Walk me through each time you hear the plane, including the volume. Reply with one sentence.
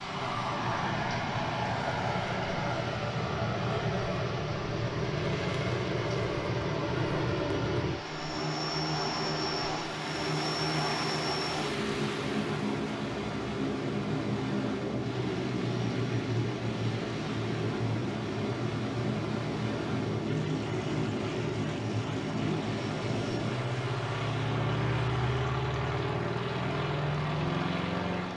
The plane can be heard from 0.0 to 28.3 s, at a steady volume.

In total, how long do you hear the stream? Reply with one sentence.
You can hear the stream for 28 seconds altogether.